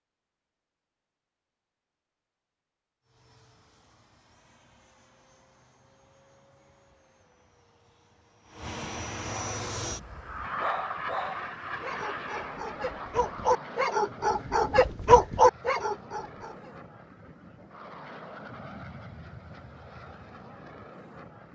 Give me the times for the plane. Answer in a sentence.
You can hear the plane from 3.0 to 21.5 s.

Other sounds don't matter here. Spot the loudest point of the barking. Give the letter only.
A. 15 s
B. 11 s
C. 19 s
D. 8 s
A.